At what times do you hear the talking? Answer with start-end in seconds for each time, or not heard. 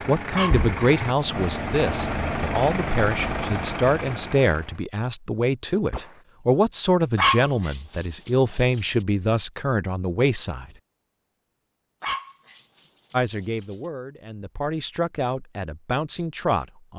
0.1-10.7, 13.1-16.9.